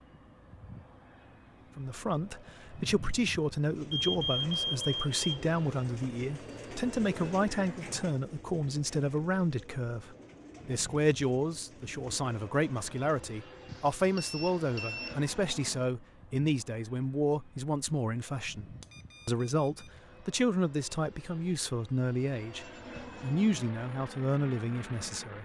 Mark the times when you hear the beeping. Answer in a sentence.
The beeping can be heard from 3.9 to 5.2 s, from 13.7 to 15.2 s and from 18.8 to 19.9 s.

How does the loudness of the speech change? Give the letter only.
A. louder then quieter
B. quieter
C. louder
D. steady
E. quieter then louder
D.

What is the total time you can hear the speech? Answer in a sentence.
You can hear the speech for 24 seconds altogether.